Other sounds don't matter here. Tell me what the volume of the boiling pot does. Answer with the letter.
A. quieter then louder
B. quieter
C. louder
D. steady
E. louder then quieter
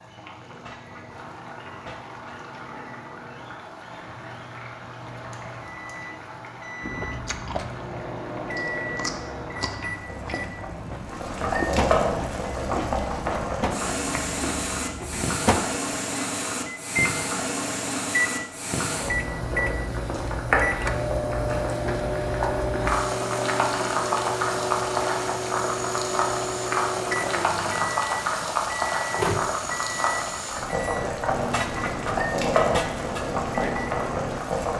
C.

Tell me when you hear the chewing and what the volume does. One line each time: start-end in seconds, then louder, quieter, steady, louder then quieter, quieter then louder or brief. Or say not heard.
6.8-15.3 steady.